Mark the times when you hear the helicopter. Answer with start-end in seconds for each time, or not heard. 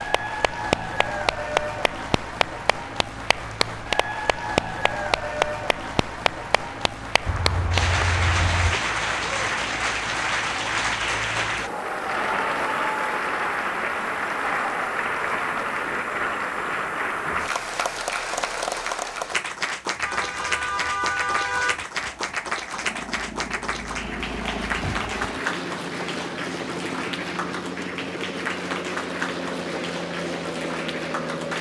0.0-18.1, 21.9-31.5.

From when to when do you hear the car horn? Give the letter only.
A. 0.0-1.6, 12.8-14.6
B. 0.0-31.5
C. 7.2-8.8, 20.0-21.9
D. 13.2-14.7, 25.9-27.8
C.